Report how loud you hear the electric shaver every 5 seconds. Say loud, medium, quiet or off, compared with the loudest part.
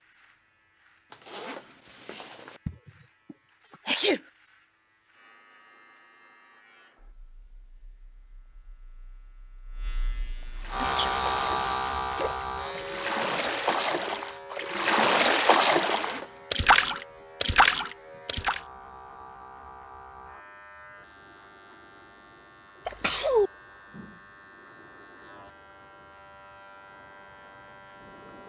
quiet, quiet, loud, quiet, quiet, quiet.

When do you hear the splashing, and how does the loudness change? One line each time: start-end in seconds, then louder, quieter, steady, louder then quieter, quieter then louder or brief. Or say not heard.
10.6-18.6 louder.